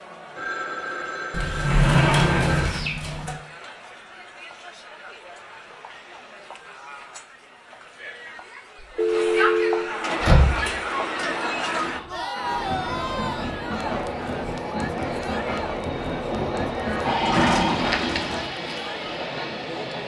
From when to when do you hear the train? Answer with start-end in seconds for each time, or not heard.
9.9-20.0.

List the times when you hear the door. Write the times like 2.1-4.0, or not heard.
1.3-3.4, 10.2-10.8, 17.2-18.4.